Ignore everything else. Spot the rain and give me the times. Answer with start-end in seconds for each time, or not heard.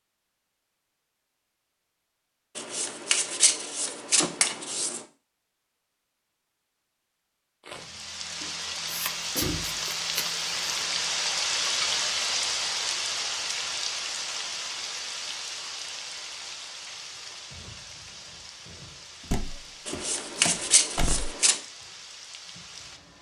7.6-23.1.